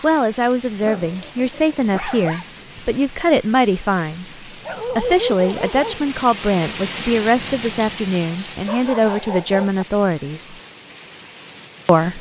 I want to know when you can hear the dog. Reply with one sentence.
The dog can be heard from 0.8 to 2.5 s, from 4.7 to 6.0 s and from 8.7 to 9.8 s.